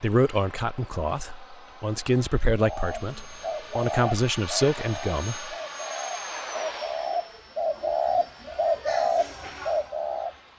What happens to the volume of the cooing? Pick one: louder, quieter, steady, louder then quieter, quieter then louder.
quieter then louder.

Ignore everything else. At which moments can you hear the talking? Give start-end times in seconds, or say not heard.
0.0-5.5.